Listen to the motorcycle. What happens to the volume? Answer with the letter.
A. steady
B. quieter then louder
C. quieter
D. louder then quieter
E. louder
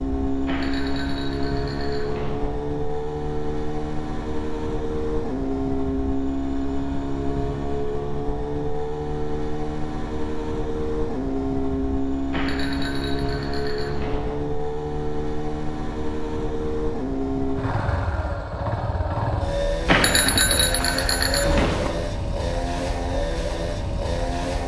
A.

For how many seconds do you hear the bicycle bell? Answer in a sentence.
You can hear the bicycle bell for 6 seconds altogether.